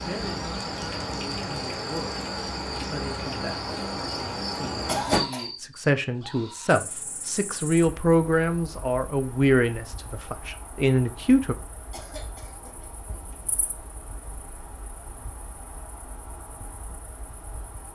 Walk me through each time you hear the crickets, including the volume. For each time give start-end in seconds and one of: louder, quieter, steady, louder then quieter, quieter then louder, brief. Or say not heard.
0.0-17.8 quieter.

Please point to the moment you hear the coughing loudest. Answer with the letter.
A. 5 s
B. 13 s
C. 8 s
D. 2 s
A.